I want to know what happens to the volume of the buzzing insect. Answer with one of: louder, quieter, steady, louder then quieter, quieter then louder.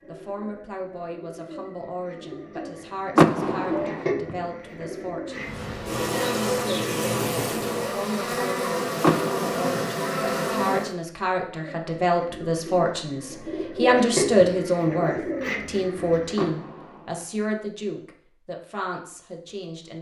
steady.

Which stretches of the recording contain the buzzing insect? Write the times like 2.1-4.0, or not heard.
5.3-10.9.